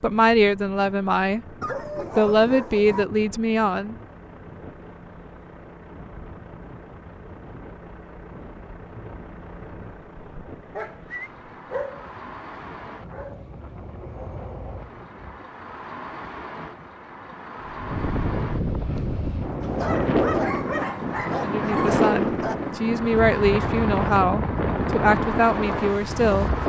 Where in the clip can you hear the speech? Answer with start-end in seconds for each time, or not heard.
0.0-1.4, 2.1-4.0, 21.4-26.6.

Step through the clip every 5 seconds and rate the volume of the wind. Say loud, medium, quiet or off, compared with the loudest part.
quiet, quiet, quiet, medium, loud, loud.